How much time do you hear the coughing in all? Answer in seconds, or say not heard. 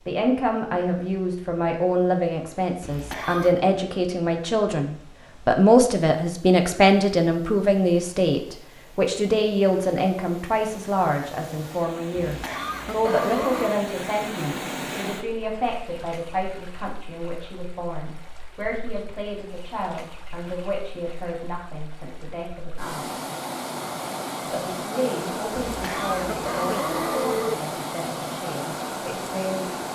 4 s.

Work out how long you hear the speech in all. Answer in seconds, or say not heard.
28 s.